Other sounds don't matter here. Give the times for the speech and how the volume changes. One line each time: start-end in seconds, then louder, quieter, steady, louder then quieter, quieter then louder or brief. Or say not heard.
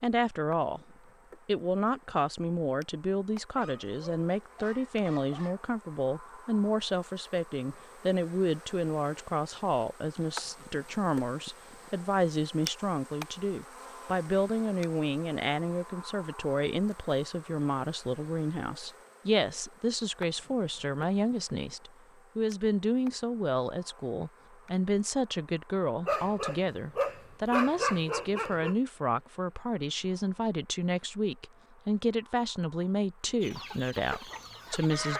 0.0-0.8 brief
1.4-35.1 steady.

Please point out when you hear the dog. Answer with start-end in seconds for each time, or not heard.
3.5-5.5, 26.1-28.8.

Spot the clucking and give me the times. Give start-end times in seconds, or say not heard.
33.4-35.1.